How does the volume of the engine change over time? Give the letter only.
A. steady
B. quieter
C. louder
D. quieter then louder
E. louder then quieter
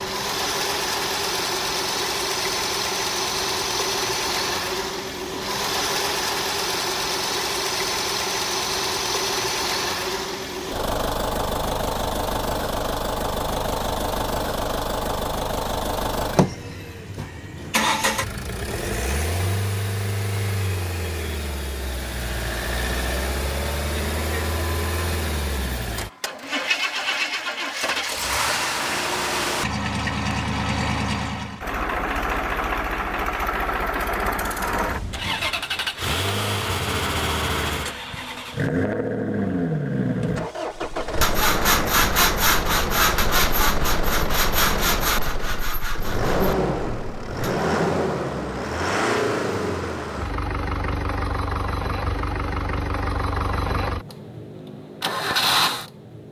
A.